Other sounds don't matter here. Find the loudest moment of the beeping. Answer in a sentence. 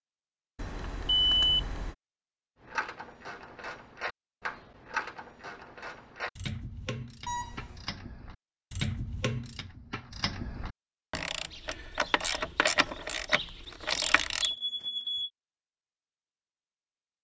The volume of the beeping peaks at 1 second.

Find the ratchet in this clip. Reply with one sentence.
You can hear the ratchet from 2.6 to 14.5 s.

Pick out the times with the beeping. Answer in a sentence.
The beeping can be heard from 0.6 to 1.9 s, from 7.2 to 7.9 s and from 14.4 to 15.3 s.